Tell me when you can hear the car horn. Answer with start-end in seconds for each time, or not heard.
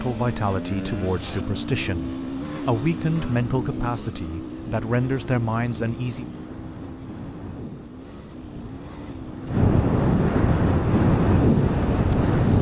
not heard.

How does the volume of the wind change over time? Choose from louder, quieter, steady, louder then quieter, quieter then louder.
louder.